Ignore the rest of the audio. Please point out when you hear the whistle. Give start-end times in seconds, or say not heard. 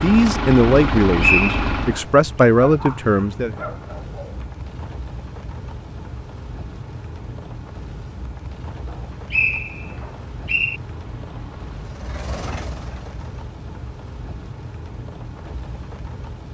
1.2-1.9, 9.3-10.8.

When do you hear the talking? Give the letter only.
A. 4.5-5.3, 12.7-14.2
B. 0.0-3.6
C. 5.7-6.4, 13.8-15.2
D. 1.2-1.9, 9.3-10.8
B.